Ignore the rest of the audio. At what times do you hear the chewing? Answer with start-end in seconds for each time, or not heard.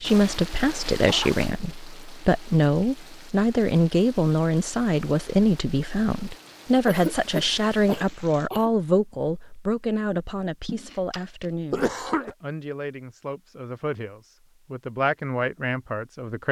10.7-12.2.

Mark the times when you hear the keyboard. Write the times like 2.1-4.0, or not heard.
not heard.